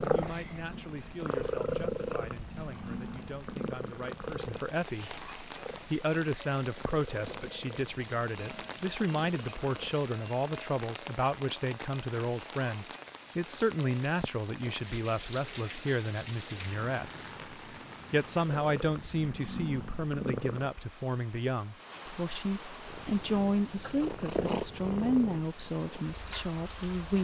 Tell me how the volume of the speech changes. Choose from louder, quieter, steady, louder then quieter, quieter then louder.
louder.